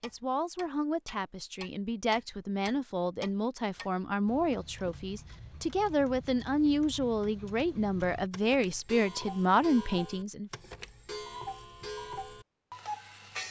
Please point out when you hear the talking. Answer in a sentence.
The talking can be heard from 0.0 to 10.5 s.